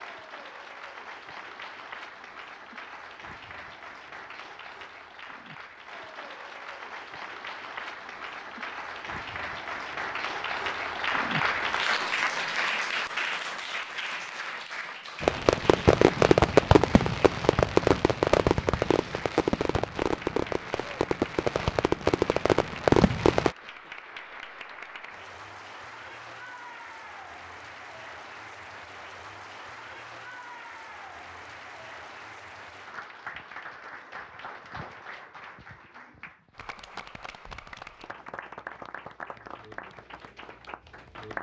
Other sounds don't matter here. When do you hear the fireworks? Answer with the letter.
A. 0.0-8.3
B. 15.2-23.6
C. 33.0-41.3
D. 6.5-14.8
B.